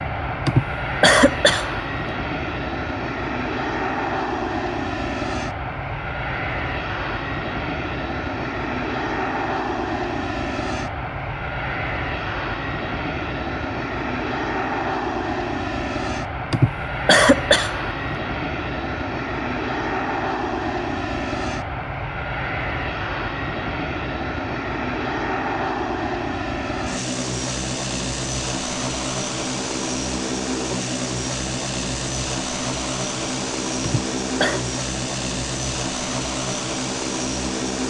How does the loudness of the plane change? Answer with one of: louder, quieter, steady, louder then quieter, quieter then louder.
steady.